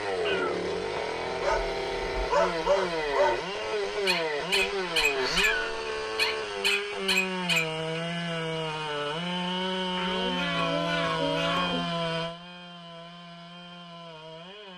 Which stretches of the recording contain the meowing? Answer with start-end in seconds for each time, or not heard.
0.2-1.2, 5.0-5.7, 9.9-11.9.